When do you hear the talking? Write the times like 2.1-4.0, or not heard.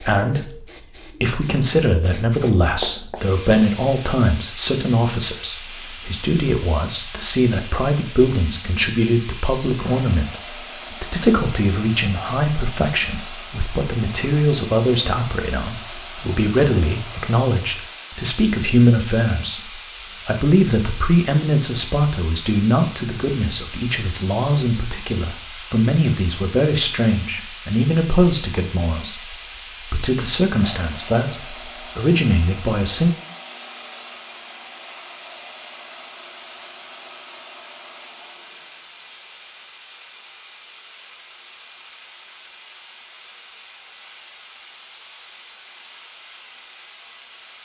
0.0-33.1.